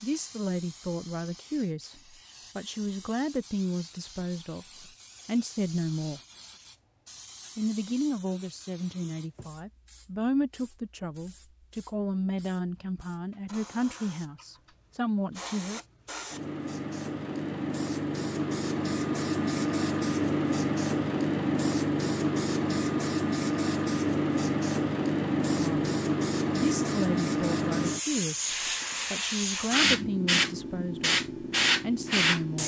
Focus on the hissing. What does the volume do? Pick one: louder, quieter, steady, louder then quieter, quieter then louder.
louder.